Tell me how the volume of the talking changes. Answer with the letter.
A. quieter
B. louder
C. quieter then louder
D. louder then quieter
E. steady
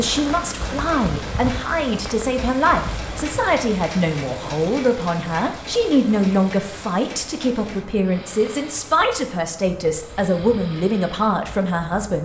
E.